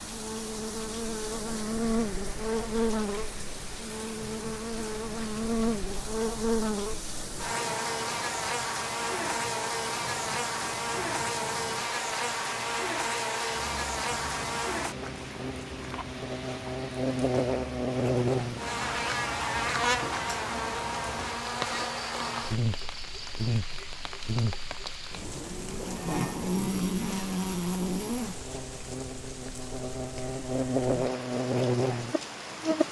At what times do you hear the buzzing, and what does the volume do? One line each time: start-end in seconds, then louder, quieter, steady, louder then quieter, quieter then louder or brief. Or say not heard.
0.0-32.8 steady.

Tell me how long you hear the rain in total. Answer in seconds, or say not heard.
33 s.